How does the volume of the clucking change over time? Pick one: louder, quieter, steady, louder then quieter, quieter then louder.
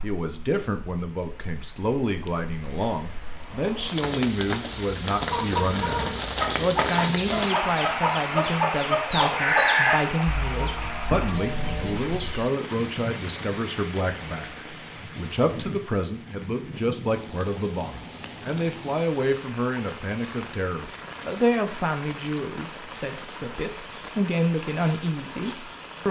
louder then quieter.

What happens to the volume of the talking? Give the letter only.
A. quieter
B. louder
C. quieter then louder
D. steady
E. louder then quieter
D.